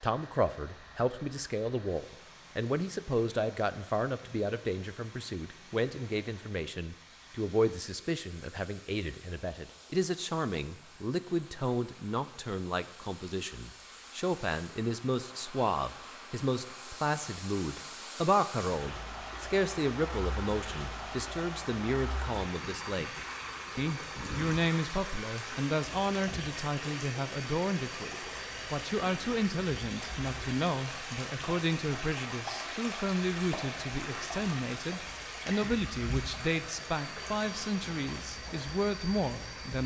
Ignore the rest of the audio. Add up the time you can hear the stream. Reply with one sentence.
You can hear the stream for 40 seconds altogether.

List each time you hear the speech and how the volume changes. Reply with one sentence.
The speech can be heard from 0.0 to 23.1 s, at a steady volume; and from 23.8 to 39.8 s, at a steady volume.